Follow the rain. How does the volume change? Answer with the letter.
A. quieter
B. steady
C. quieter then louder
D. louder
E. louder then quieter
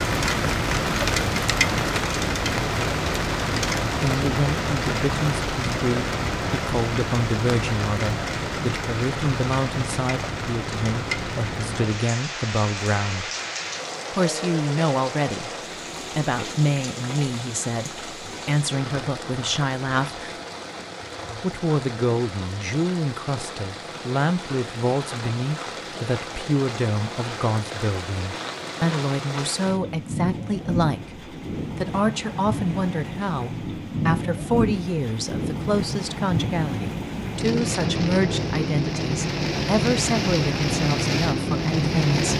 C.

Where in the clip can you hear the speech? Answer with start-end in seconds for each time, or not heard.
4.0-13.3, 14.1-15.5, 16.1-20.2, 21.4-42.3.